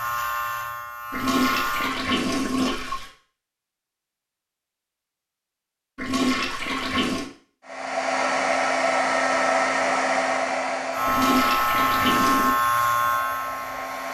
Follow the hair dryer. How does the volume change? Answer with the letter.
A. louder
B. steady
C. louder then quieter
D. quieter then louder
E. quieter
E.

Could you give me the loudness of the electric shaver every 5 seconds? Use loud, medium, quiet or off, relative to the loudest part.
medium, off, loud.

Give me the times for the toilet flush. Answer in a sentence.
The toilet flush can be heard from 1.1 to 3.1 s, from 6.0 to 7.3 s and from 11.1 to 12.6 s.